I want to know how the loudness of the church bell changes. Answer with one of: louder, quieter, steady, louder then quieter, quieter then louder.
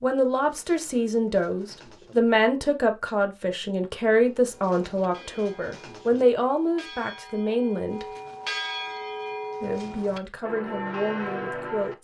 louder.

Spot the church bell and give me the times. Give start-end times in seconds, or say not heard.
4.5-11.9.